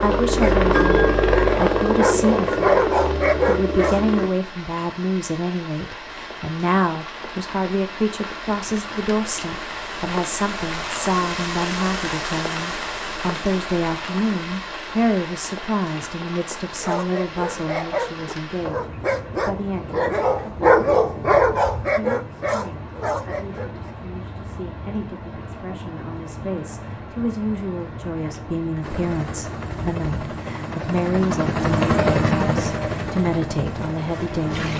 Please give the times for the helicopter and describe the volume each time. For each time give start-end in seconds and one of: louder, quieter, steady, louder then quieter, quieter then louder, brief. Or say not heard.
0.0-4.3 quieter
28.8-34.7 louder then quieter.